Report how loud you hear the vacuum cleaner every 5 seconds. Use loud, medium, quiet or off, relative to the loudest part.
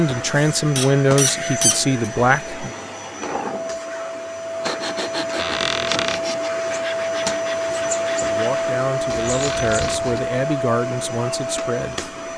medium, loud, loud.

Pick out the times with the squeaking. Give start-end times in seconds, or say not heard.
0.8-1.9, 5.3-6.2, 9.2-10.1.